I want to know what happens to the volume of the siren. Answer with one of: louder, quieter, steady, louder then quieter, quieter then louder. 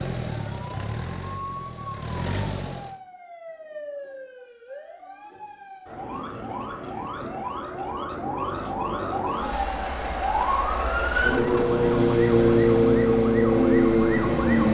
louder.